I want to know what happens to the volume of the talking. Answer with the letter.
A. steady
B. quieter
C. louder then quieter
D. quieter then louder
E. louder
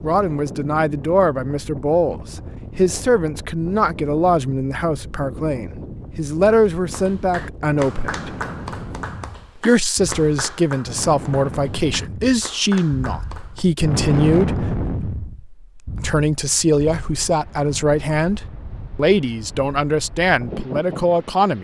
A.